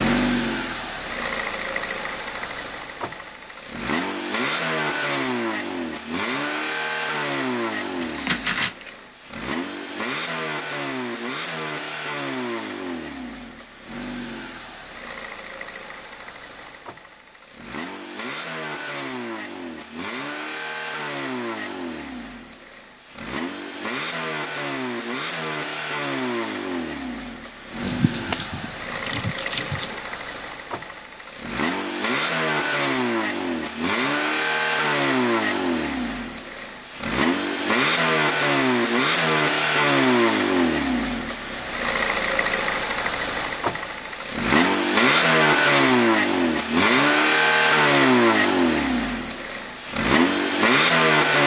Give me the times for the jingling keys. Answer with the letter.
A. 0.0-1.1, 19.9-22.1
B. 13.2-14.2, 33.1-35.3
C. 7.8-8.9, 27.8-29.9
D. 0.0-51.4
C.